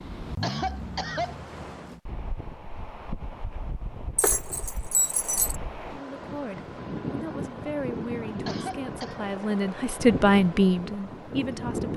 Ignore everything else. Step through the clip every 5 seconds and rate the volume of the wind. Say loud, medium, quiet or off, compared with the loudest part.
medium, loud, loud.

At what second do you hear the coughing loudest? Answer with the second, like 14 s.
1 s.